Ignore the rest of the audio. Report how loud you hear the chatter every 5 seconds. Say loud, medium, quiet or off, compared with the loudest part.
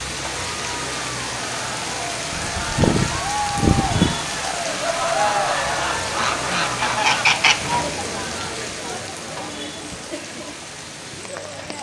loud, loud, medium.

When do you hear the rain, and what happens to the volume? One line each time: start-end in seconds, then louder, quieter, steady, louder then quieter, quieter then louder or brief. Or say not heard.
0.0-11.7 quieter.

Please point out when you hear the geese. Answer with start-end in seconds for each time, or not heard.
2.3-4.2, 6.2-7.8.